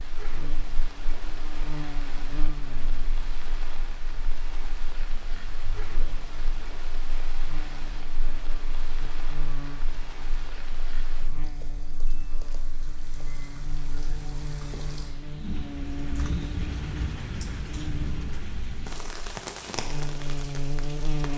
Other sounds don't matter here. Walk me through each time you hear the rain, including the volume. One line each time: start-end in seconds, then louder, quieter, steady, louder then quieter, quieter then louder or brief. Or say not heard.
0.0-21.3 louder.